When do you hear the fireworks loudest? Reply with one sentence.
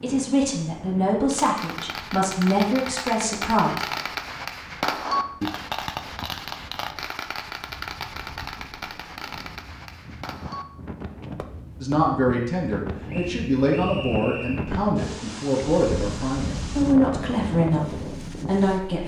The volume of the fireworks peaks at 5 seconds.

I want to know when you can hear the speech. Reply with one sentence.
The speech can be heard from 0.0 to 3.9 s and from 11.8 to 19.0 s.